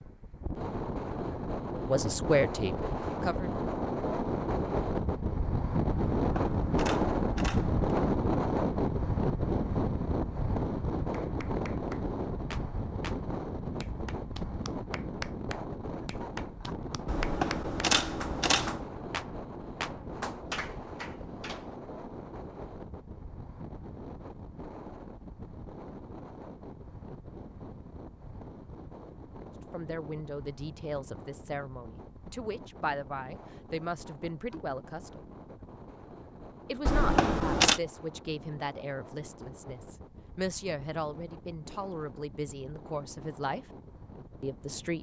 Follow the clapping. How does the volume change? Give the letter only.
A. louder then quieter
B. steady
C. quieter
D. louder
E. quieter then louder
A.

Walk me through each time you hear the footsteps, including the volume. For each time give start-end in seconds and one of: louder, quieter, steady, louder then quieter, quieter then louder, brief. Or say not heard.
not heard.